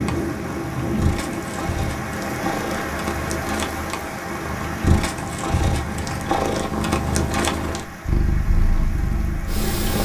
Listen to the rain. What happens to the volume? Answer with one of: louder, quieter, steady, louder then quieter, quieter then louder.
quieter.